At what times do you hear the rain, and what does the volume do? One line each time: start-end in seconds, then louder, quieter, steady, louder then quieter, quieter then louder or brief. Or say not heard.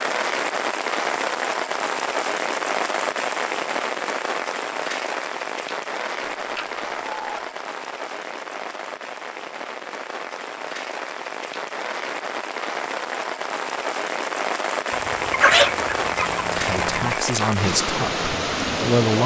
0.0-19.2 quieter then louder.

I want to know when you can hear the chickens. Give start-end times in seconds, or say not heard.
6.3-7.5, 14.9-17.2.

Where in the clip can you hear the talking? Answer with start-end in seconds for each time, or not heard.
16.5-19.2.